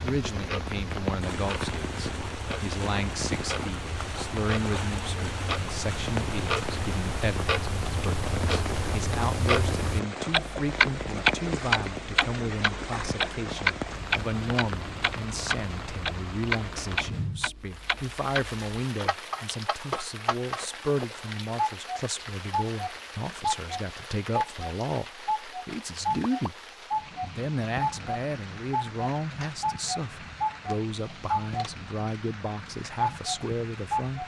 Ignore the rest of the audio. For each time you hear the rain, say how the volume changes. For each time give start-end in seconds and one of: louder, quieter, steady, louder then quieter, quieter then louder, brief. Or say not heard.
0.0-34.2 quieter.